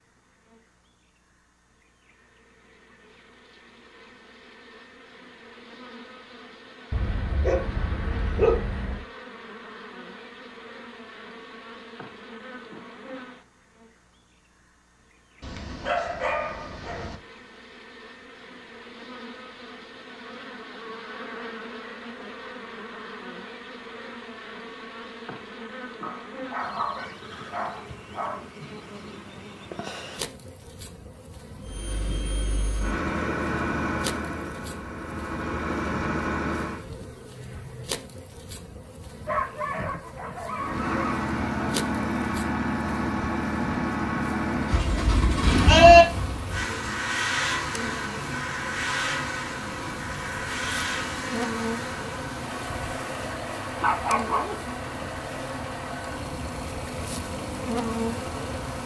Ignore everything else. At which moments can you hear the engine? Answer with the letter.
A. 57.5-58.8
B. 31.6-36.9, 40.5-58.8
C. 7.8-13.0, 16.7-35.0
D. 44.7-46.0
B.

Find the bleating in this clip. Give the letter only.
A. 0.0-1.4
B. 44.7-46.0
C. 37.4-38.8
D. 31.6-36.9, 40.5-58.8
B.